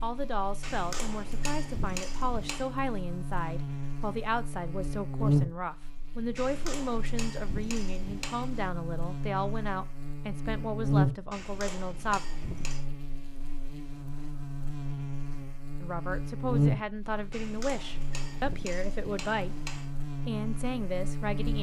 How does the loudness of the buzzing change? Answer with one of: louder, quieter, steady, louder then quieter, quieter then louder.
louder then quieter.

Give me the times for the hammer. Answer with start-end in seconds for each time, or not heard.
0.6-2.7, 6.3-8.7, 11.3-12.8, 17.3-19.9.